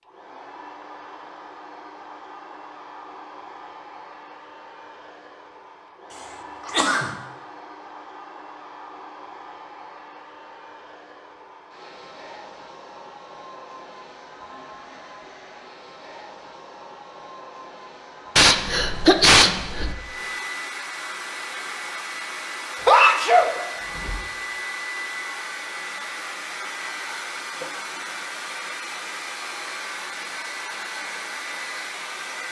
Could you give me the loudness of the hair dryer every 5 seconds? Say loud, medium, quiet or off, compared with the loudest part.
medium, medium, medium, medium, loud, loud, loud.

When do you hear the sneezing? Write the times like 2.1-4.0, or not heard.
6.7-7.2, 18.4-19.9, 22.9-24.2.